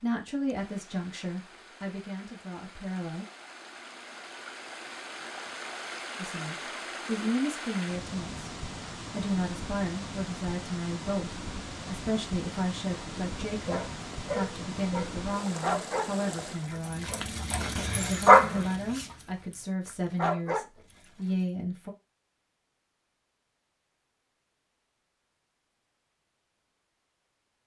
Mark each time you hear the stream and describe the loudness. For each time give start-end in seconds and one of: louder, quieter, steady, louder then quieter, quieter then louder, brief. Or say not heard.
0.0-16.7 louder.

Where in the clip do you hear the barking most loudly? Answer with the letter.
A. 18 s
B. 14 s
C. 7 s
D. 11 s
A.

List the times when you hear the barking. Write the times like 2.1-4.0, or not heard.
13.2-20.6.